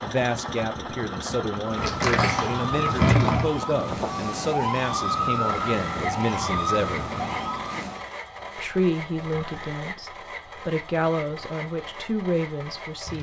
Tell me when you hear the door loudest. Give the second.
3 s.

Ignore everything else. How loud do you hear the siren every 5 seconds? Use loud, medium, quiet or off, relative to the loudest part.
loud, loud, off.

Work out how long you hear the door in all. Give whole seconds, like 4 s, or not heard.
2 s.